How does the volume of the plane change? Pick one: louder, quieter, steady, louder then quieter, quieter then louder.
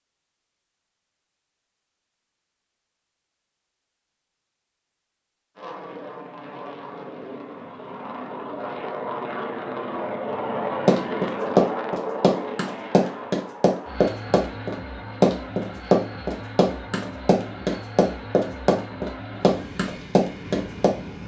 louder then quieter.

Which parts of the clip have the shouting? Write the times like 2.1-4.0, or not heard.
not heard.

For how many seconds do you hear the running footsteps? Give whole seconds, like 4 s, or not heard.
10 s.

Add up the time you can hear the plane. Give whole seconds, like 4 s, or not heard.
16 s.